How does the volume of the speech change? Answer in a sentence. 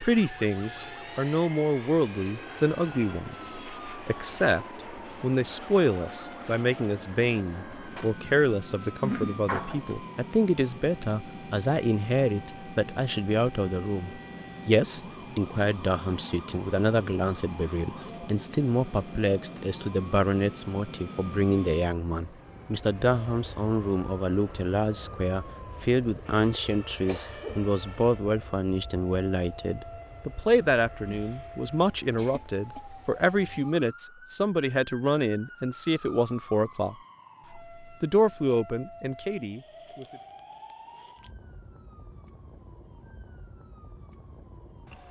The volume of the speech stays about the same.